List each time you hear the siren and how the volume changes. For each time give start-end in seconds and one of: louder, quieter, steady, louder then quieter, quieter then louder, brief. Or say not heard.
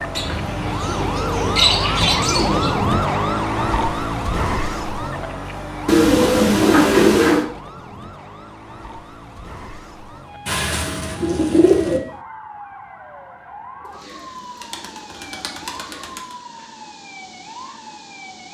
0.0-18.4 quieter.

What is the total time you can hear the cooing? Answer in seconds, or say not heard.
7 s.